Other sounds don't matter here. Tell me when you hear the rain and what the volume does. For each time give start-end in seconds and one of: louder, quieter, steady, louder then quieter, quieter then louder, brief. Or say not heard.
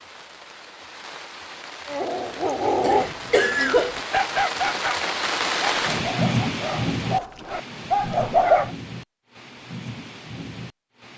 0.0-11.1 louder then quieter.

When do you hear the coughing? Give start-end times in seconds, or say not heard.
2.8-4.0.